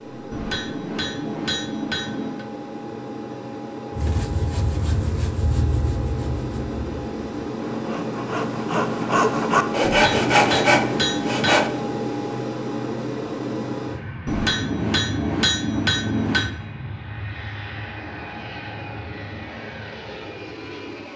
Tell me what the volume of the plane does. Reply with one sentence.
The volume of the plane goes up, then down.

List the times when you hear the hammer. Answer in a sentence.
The hammer can be heard from 0.3 to 2.5 s, from 9.8 to 11.7 s and from 14.2 to 16.6 s.